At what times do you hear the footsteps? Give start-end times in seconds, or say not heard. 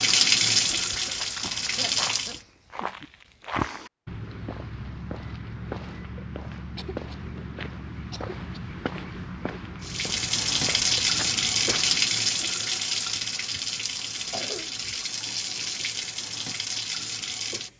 0.9-12.1.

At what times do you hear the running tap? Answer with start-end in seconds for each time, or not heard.
0.0-2.4, 9.8-17.7.